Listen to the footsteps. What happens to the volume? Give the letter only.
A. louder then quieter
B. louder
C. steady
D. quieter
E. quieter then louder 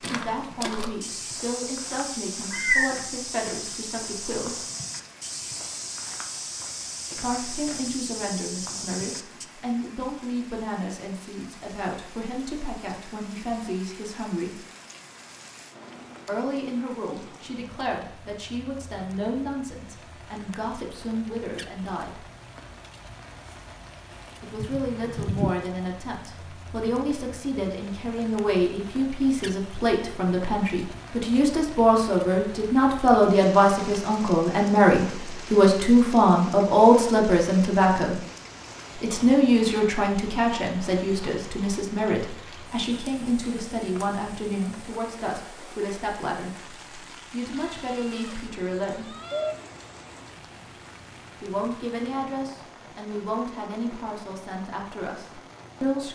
C.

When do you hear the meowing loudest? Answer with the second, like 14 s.
3 s.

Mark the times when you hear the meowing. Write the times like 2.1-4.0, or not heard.
2.5-3.0, 24.6-25.6, 47.5-49.5.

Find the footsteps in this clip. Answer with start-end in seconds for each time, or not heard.
0.0-9.4.